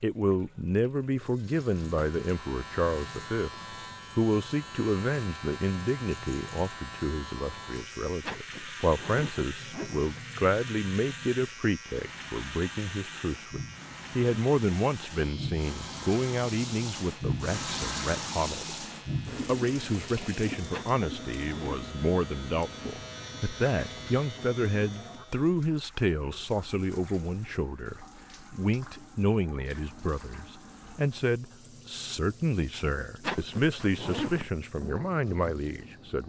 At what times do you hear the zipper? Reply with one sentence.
You can hear the zipper from 8.2 to 10.1 s, from 20.7 to 21.9 s and from 33.2 to 34.6 s.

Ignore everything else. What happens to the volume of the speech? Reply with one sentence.
The volume of the speech stays about the same.